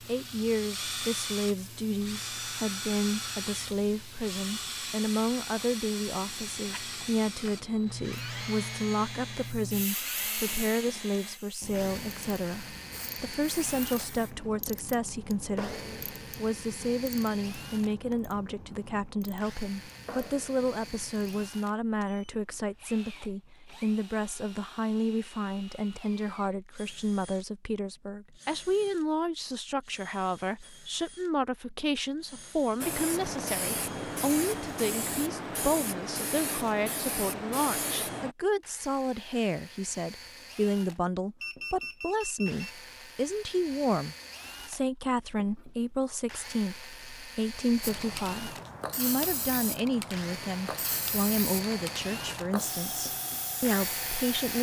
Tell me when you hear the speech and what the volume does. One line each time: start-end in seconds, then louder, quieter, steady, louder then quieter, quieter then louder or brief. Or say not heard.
0.1-54.5 steady.